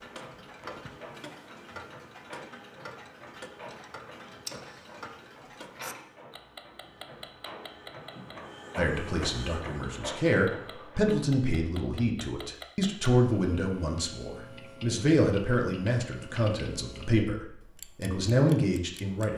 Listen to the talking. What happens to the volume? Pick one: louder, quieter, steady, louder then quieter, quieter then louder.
steady.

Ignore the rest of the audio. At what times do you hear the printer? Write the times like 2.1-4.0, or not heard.
0.0-11.1.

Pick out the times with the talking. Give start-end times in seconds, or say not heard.
8.8-19.3.